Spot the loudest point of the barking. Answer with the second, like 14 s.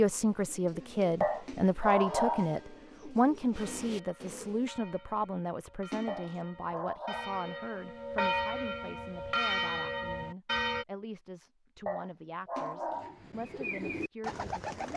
2 s.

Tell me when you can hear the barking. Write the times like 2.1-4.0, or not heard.
1.2-2.5, 6.0-7.4, 11.8-13.2.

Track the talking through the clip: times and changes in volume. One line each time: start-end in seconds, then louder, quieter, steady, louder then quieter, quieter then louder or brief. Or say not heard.
0.0-14.7 quieter.